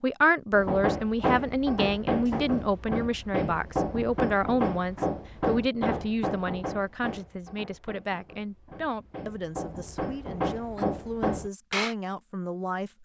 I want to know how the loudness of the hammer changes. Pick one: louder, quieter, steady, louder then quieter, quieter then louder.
quieter then louder.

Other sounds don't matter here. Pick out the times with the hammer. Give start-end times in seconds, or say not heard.
0.5-11.9.